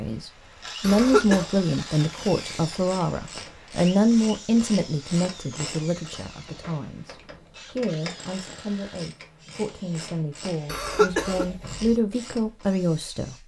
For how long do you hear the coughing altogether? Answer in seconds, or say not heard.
2 s.